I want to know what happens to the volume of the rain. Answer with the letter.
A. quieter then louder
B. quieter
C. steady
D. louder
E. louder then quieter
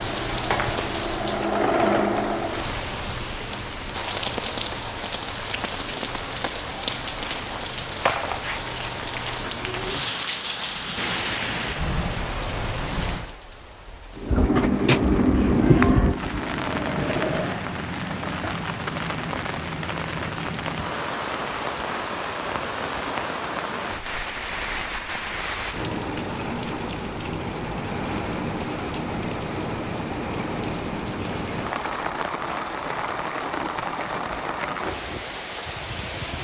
C.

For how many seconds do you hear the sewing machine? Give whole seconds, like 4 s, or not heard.
6 s.